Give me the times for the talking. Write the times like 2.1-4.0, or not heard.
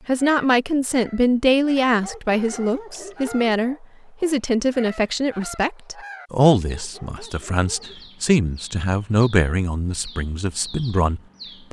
0.1-11.6.